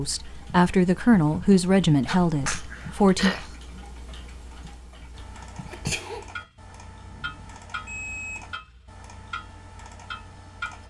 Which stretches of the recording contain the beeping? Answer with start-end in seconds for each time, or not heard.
7.0-8.5.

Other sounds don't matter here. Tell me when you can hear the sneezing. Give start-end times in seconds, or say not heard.
2.0-3.5, 5.7-6.2.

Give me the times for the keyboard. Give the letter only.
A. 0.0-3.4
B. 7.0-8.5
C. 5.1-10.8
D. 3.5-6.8
C.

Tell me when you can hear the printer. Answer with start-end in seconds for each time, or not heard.
not heard.